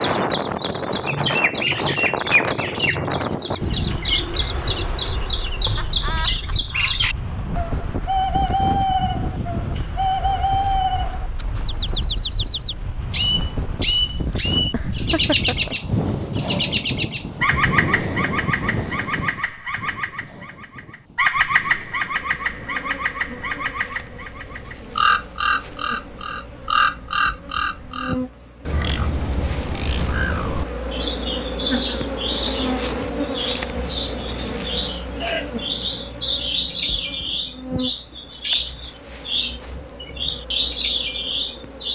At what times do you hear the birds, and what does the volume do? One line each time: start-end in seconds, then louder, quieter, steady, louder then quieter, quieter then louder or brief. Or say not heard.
0.0-41.9 steady.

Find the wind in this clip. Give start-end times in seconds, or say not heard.
0.0-28.1.